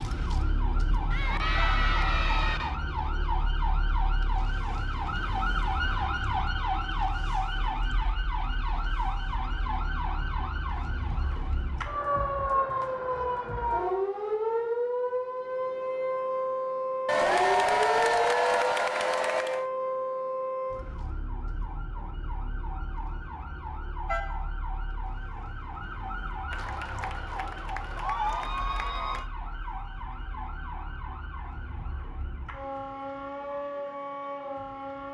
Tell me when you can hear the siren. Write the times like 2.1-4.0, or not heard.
0.0-35.0.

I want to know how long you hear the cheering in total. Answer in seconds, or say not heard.
7 s.